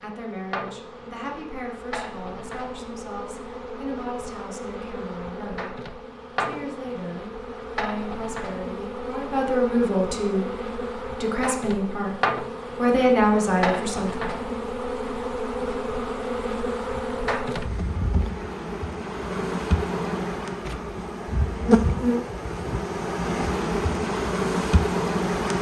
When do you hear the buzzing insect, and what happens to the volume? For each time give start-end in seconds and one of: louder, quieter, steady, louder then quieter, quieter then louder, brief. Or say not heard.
0.0-25.5 louder.